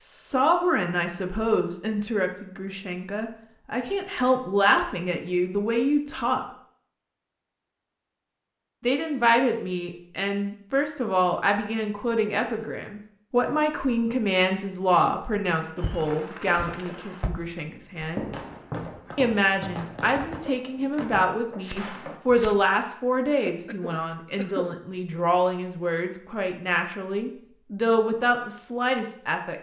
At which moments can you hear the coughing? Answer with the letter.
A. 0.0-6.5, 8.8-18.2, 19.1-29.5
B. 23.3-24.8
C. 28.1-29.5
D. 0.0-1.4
B.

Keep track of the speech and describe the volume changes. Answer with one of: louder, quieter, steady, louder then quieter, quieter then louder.
steady.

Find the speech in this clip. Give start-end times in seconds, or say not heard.
0.0-6.5, 8.8-18.2, 19.1-29.5.